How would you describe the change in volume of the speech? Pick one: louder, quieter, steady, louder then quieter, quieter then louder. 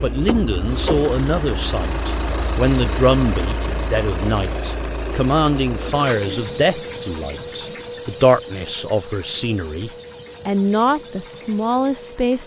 steady.